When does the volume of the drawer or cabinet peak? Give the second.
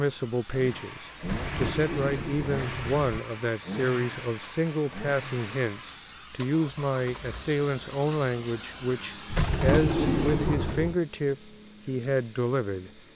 10 s.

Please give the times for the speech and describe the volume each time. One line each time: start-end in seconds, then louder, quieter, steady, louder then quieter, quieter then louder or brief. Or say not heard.
0.0-13.0 steady.